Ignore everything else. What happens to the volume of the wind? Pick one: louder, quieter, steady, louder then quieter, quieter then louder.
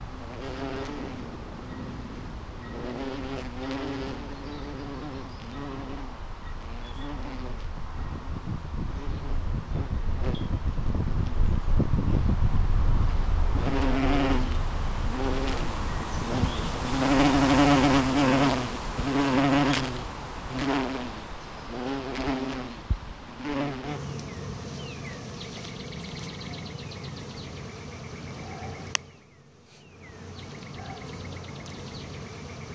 louder then quieter.